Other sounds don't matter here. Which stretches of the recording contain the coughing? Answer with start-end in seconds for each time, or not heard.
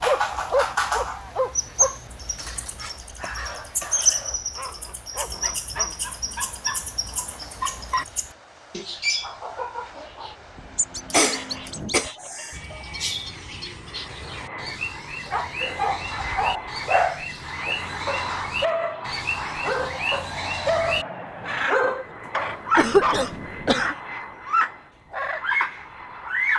3.2-4.0, 11.1-12.8, 22.8-23.9.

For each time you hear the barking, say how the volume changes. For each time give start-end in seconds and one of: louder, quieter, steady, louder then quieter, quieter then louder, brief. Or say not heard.
0.0-8.1 quieter
15.2-23.4 quieter then louder.